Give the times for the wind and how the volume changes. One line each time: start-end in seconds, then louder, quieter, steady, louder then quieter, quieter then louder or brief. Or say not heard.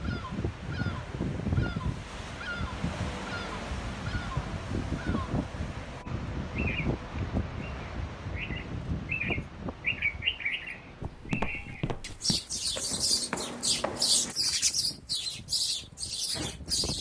0.0-16.9 quieter.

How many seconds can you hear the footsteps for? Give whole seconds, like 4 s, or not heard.
3 s.